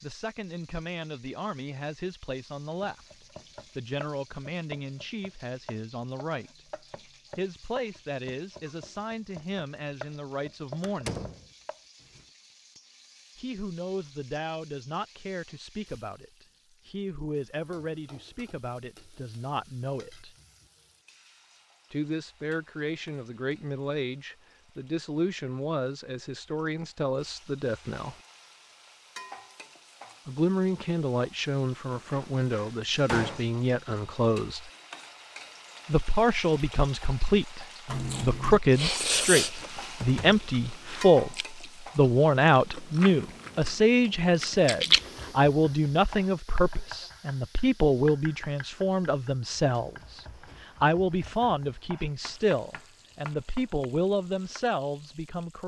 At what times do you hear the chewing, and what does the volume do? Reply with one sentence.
The chewing can be heard from 37.9 to 45.4 s, getting quieter then louder.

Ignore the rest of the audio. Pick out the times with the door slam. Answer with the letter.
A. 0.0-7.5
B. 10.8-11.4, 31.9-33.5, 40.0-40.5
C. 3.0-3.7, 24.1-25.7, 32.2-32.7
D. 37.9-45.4
B.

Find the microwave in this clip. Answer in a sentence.
You can't hear the microwave here.